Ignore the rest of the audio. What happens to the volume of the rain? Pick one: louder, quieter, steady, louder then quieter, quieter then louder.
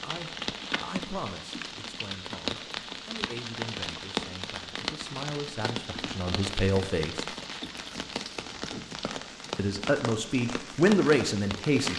steady.